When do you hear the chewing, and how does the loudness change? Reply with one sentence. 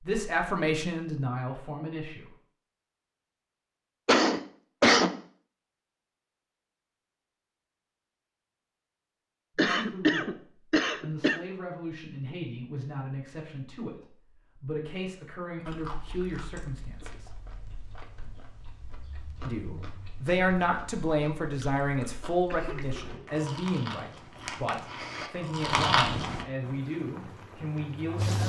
The chewing can be heard from 15.7 to 26.4 s, getting louder.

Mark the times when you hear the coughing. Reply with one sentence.
You can hear the coughing from 4.0 to 5.2 s, from 9.6 to 11.4 s and from 22.4 to 23.4 s.